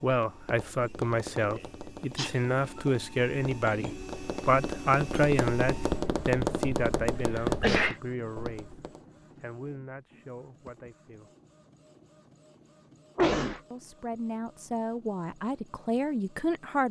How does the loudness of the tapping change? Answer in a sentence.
The loudness of the tapping goes up.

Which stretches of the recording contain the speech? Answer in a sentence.
You can hear the speech from 0.0 to 8.8 s, from 9.3 to 11.3 s and from 13.7 to 16.8 s.